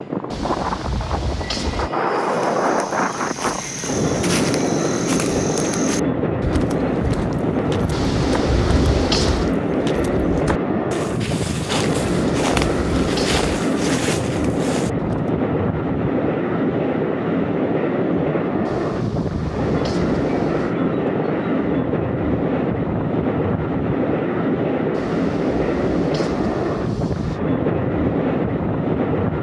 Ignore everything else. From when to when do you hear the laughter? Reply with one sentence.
The laughter can't be heard in this clip.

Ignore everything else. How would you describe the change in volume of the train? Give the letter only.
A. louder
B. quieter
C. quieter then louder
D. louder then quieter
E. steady
E.